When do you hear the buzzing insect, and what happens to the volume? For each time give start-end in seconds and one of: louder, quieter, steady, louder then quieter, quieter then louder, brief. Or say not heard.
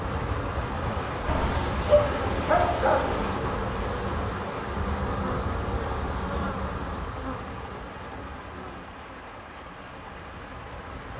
0.0-11.1 quieter.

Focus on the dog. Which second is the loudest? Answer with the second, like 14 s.
2 s.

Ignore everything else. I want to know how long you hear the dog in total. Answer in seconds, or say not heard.
2 s.